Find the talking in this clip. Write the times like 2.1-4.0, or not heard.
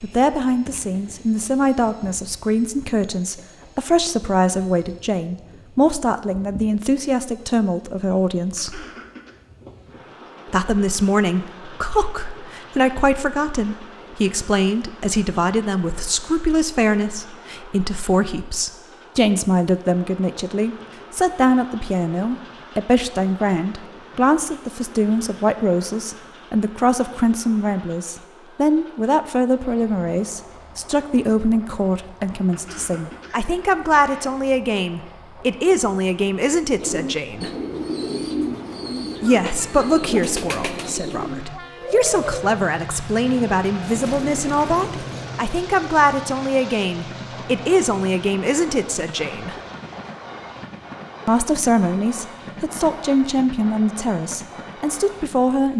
0.0-8.8, 10.5-37.5, 39.2-49.5, 51.2-55.7.